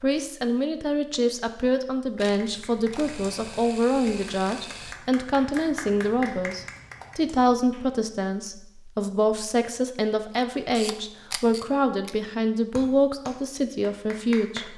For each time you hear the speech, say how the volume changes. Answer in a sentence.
The speech can be heard from 0.0 to 14.7 s, at a steady volume.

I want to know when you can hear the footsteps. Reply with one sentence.
You can't hear the footsteps here.